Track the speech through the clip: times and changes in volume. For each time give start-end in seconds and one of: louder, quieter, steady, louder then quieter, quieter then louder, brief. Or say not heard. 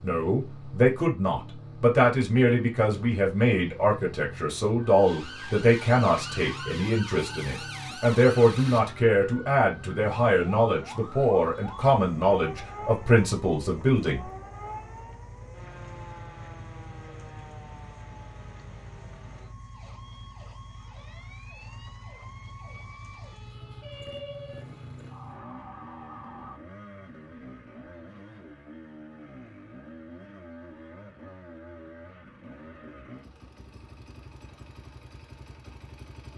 0.0-14.2 steady.